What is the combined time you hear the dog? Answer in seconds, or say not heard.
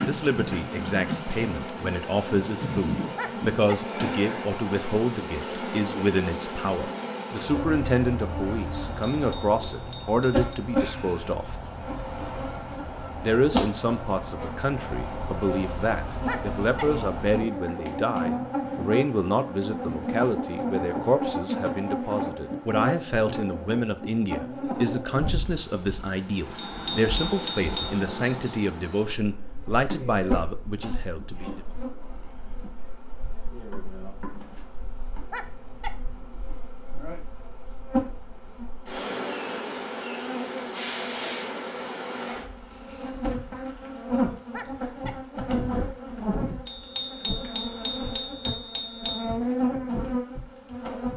3 s.